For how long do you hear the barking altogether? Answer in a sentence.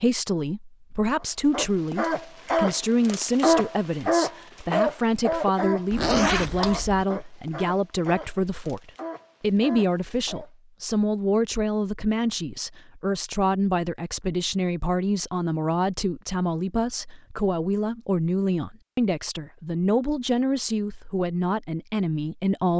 The barking can be heard for 9 seconds in total.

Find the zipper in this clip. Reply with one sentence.
You can hear the zipper from 5.9 to 7.0 s.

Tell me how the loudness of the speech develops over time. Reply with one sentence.
The loudness of the speech stays about the same.